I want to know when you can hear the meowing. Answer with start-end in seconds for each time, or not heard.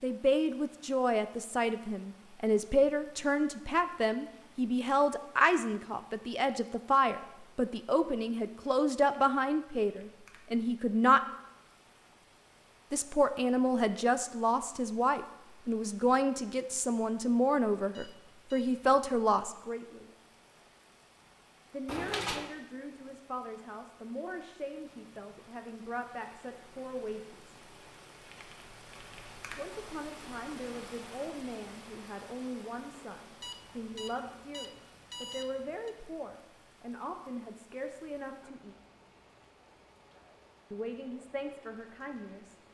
21.9-22.6.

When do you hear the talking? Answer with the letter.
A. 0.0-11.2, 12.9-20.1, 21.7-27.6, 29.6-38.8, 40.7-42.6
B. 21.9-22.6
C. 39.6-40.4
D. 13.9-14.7
A.